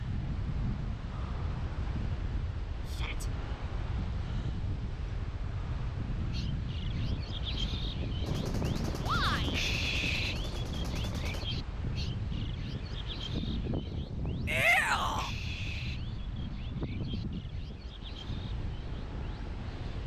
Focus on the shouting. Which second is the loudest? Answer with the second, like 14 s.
15 s.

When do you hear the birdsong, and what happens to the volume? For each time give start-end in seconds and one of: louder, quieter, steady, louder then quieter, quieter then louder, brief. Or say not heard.
6.2-20.0 quieter.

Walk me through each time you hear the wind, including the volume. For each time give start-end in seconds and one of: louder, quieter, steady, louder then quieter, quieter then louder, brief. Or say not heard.
0.0-20.0 steady.